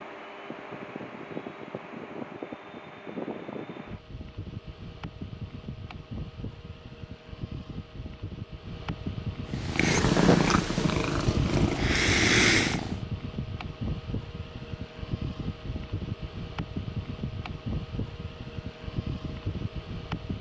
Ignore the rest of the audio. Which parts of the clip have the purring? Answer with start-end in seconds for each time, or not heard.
9.5-13.0.